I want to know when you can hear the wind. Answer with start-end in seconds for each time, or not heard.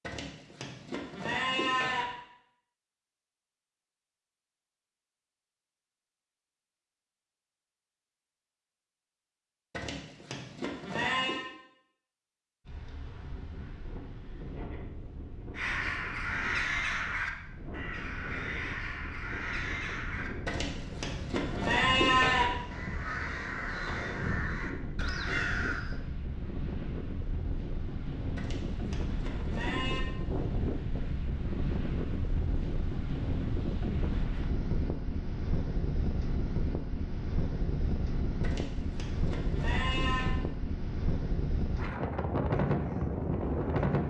12.7-44.0.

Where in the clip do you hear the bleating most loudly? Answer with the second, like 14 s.
22 s.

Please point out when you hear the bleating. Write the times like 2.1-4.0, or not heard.
0.0-2.0, 9.7-11.4, 20.4-22.4, 28.4-30.1, 38.4-40.4.